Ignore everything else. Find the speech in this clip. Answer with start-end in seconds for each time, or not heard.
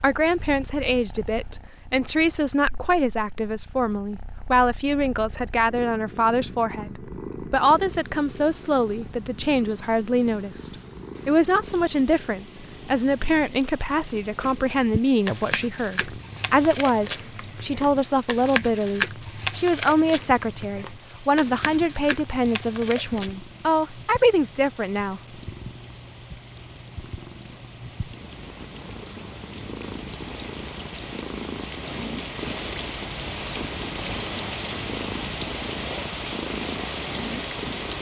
0.0-25.2.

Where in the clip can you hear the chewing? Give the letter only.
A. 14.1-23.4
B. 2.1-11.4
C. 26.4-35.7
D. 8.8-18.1
A.